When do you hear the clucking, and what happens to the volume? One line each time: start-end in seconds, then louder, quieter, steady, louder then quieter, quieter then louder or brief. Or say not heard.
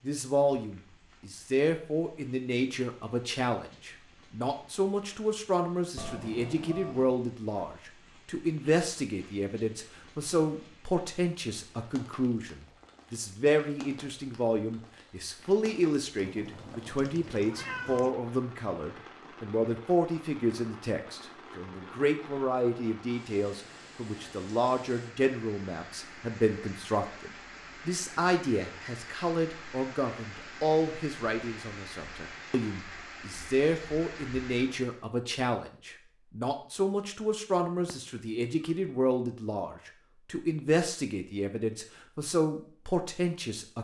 not heard.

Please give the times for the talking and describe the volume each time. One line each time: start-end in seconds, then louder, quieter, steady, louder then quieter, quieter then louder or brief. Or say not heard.
0.0-43.7 steady.